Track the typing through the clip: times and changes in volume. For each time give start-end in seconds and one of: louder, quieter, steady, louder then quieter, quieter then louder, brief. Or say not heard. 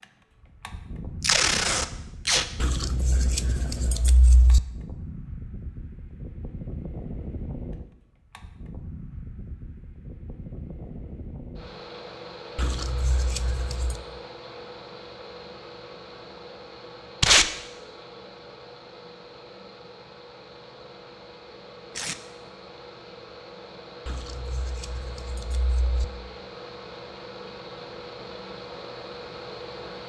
not heard.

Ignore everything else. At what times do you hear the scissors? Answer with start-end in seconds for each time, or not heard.
2.6-4.6, 12.6-14.0, 24.1-26.1.